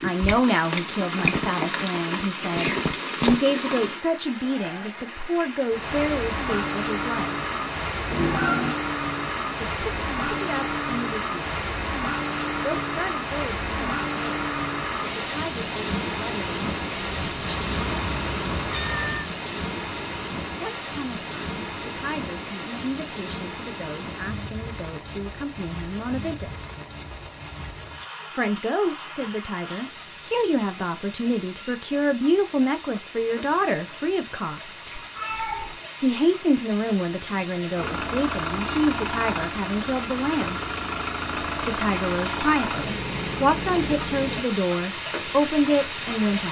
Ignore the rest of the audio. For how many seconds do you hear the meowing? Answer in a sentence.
You can hear the meowing for 3 seconds altogether.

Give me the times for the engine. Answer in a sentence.
The engine can be heard from 16.9 to 19.1 s and from 37.7 to 44.5 s.